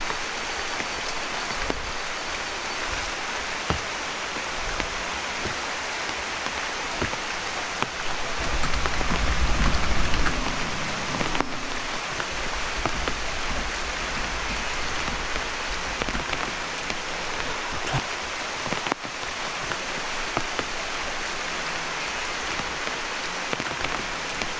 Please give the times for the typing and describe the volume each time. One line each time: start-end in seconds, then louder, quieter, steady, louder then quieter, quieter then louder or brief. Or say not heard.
8.0-16.2 quieter.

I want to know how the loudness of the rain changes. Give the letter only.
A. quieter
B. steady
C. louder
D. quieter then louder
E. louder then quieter
B.